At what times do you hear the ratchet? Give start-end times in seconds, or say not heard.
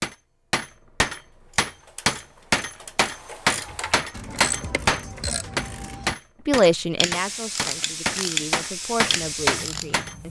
1.4-10.1.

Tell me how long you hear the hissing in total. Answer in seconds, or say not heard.
3 s.